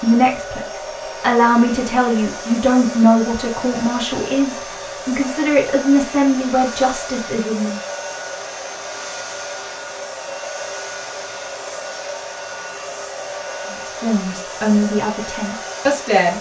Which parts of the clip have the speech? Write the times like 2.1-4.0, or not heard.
0.0-7.8, 13.7-16.3.